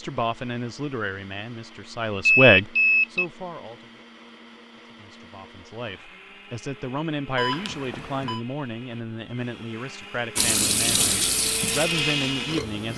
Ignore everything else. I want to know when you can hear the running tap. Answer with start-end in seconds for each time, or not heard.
10.3-12.9.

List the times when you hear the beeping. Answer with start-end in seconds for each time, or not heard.
2.2-3.2, 7.3-8.4.